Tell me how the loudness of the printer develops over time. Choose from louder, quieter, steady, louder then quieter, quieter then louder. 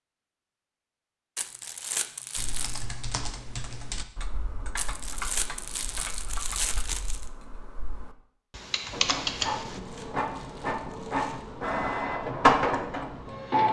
louder.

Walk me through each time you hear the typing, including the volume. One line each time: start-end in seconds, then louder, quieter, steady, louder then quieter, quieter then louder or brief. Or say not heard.
2.4-9.8 quieter then louder.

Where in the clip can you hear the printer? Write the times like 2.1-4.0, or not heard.
8.9-13.6.